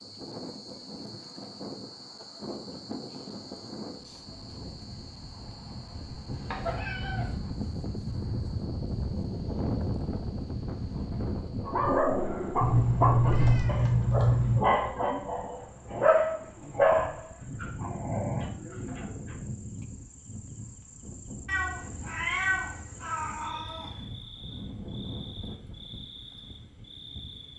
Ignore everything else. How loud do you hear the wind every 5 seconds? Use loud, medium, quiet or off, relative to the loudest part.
medium, loud, loud, medium, medium, medium.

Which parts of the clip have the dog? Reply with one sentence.
You can hear the dog from 11.7 to 19.4 s.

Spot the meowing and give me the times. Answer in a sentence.
The meowing can be heard from 6.3 to 7.3 s, from 12.6 to 14.6 s and from 21.4 to 24.1 s.